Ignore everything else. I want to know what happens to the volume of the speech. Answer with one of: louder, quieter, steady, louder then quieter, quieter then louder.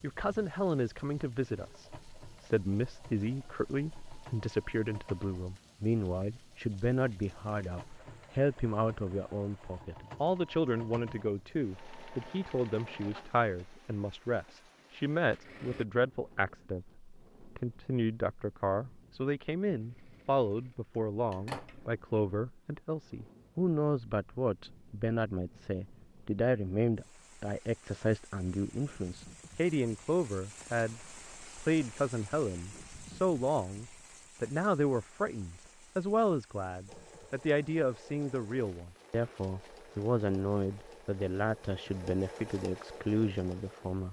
steady.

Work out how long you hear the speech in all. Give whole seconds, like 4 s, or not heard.
44 s.